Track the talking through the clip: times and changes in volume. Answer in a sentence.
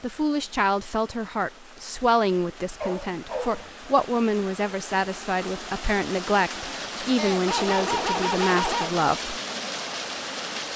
You can hear the talking from 0.0 to 9.3 s, at a steady volume.